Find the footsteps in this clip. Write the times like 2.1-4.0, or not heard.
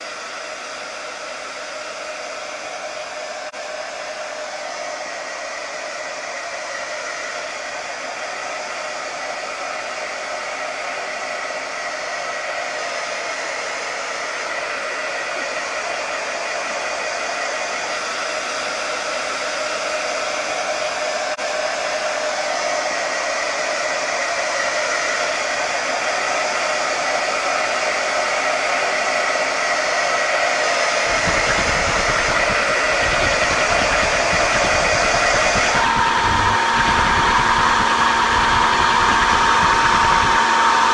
not heard.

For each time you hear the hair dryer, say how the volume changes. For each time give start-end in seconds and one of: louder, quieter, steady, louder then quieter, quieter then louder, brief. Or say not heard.
0.0-40.8 louder.